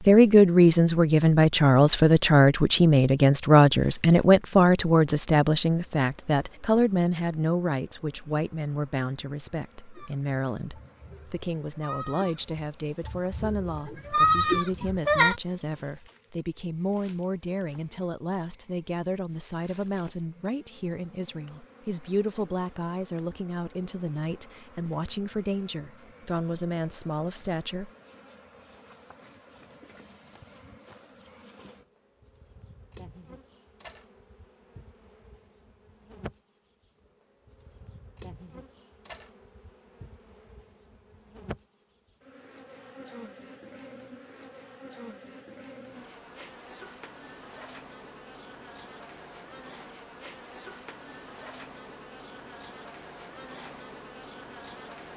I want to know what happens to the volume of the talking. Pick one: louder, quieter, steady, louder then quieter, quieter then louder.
quieter.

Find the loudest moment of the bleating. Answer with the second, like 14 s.
14 s.